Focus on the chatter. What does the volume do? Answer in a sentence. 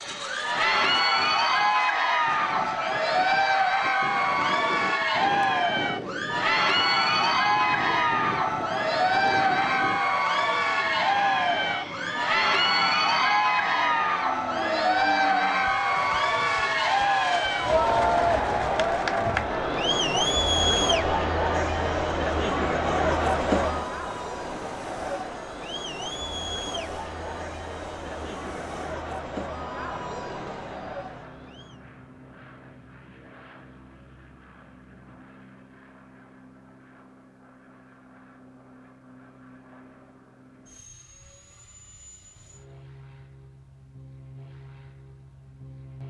The loudness of the chatter goes down.